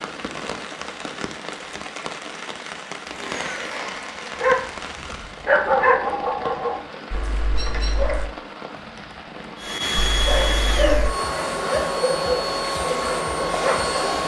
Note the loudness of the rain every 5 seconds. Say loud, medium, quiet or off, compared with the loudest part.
loud, loud, off.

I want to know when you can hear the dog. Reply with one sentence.
You can hear the dog from 4.3 to 8.3 s and from 9.9 to 14.2 s.